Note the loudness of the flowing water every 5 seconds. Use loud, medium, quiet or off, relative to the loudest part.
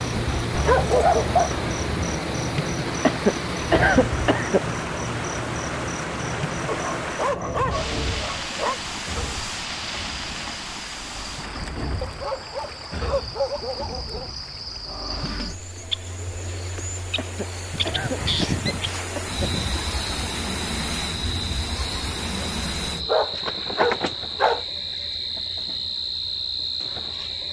loud, loud, medium, medium, loud, off.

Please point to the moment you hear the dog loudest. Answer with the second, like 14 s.
1 s.